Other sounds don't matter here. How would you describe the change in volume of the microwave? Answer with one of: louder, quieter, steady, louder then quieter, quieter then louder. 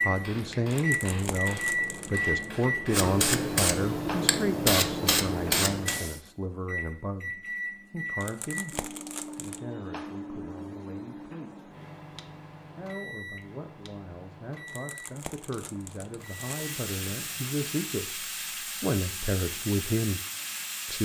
quieter.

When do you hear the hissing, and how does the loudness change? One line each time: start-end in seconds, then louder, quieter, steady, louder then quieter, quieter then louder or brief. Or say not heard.
0.0-6.2 louder
16.2-21.0 steady.